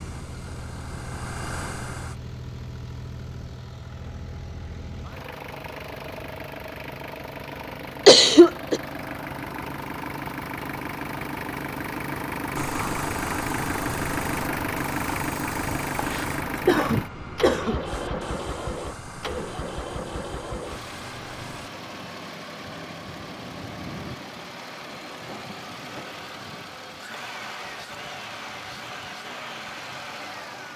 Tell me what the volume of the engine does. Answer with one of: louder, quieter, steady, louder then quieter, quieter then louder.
louder then quieter.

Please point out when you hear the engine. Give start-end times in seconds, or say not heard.
0.0-30.7.